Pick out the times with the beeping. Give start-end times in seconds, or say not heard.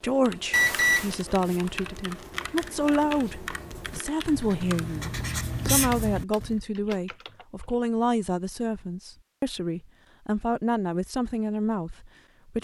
0.5-1.1.